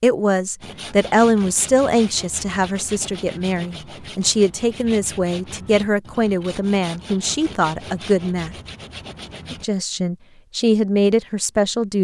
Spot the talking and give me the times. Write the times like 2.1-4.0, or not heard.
0.0-8.6, 9.5-11.9.